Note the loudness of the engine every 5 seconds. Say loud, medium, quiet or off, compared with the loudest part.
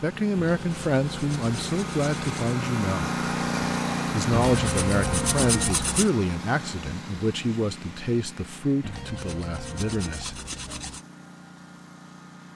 loud, medium, quiet.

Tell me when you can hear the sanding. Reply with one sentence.
The sanding can be heard from 0.3 to 2.5 s, from 4.3 to 6.1 s and from 8.8 to 11.1 s.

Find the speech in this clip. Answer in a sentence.
You can hear the speech from 0.0 to 3.1 s and from 4.1 to 10.3 s.